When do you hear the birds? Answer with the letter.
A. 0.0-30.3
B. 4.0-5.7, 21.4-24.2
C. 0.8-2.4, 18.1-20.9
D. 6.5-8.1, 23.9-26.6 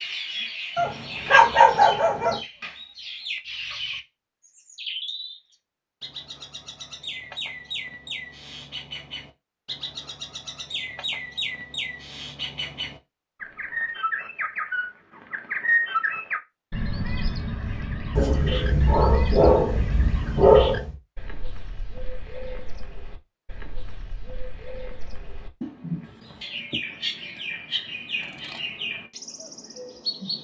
A.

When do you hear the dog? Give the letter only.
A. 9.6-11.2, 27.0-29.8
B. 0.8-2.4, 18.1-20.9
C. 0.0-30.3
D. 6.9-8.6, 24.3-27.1
B.